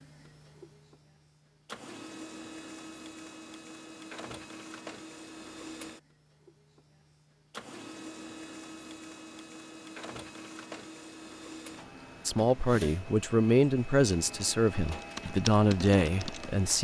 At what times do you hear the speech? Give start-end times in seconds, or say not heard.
12.2-16.7.